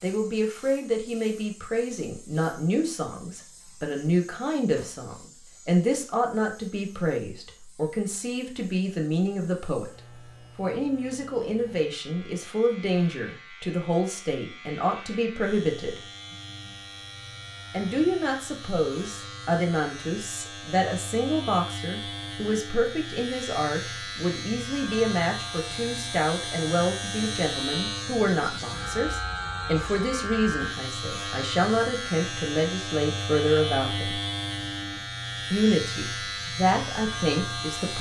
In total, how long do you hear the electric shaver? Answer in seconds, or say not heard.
38 s.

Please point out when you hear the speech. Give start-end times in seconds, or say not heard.
0.0-9.9, 10.6-16.0, 17.7-34.2, 35.5-37.9.